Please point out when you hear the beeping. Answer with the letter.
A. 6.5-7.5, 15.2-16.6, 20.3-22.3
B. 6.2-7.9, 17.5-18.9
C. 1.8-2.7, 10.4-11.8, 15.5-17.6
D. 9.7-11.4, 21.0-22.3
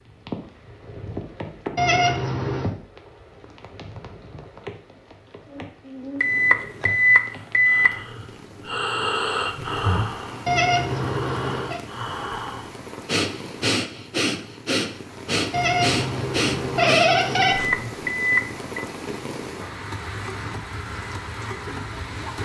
B.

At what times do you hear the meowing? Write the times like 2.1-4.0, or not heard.
1.8-2.7, 10.4-11.8, 15.5-17.6.